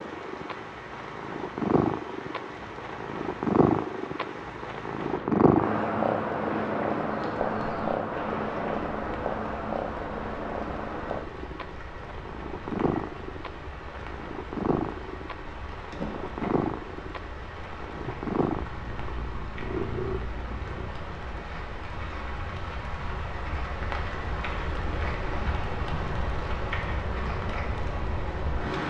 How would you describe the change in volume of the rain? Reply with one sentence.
The volume of the rain goes up.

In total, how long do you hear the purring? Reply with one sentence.
The purring can be heard for 21 seconds in total.